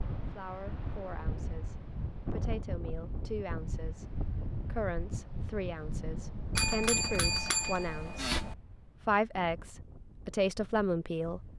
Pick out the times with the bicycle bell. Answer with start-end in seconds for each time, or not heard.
6.5-8.6.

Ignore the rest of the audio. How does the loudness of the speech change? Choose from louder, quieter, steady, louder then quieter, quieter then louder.
louder.